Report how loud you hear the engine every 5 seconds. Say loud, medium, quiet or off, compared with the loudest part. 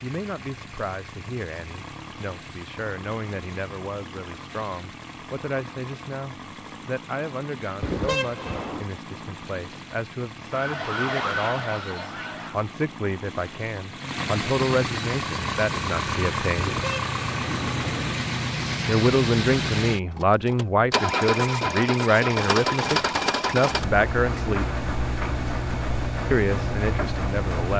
quiet, quiet, medium, loud, loud, loud.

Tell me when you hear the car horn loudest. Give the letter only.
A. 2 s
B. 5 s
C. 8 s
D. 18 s
C.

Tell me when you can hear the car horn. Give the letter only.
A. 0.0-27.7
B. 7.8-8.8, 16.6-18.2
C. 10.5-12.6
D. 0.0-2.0
B.